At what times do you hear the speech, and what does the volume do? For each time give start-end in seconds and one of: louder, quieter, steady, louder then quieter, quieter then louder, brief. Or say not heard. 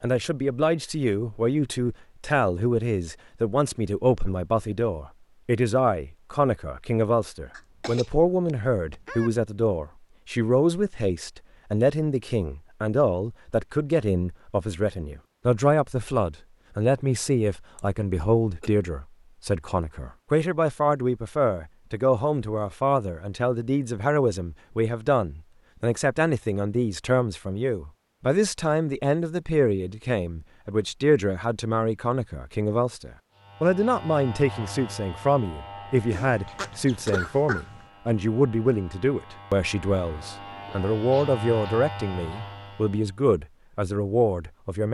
0.0-44.8 steady.